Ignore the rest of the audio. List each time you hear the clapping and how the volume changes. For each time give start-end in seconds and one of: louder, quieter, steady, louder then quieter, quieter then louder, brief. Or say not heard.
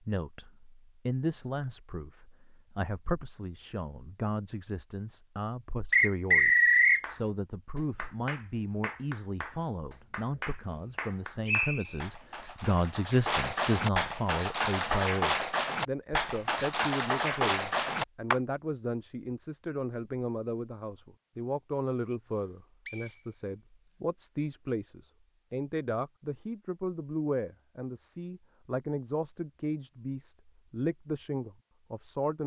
7.0-18.4 louder.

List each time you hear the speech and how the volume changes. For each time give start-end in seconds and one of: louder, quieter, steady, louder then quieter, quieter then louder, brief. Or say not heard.
0.0-32.4 steady.